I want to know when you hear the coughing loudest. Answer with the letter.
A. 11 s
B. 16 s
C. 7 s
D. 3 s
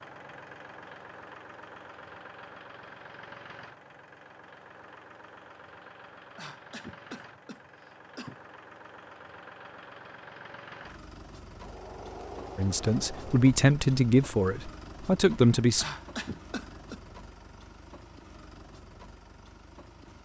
B.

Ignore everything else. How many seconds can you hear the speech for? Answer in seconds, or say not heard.
3 s.